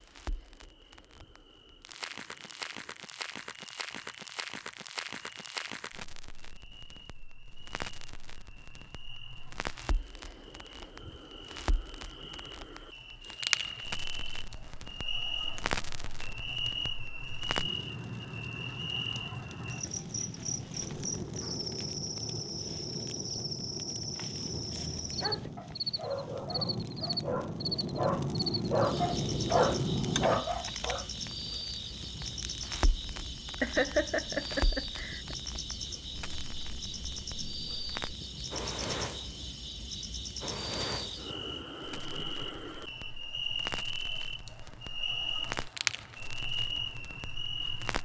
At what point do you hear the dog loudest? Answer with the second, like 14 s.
30 s.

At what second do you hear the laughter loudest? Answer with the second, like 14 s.
34 s.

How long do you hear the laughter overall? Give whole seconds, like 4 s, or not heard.
2 s.